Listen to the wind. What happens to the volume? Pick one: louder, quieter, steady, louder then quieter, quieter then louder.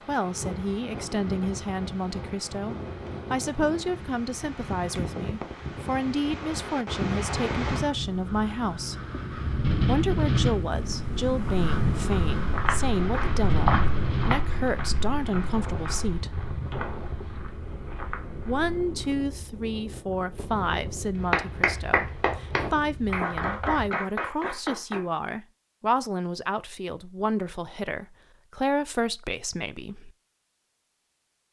louder then quieter.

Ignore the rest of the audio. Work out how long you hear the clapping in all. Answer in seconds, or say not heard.
4 s.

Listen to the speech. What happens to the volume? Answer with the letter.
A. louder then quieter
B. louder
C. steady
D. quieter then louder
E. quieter
C.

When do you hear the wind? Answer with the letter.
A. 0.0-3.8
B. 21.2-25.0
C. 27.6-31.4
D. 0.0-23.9
D.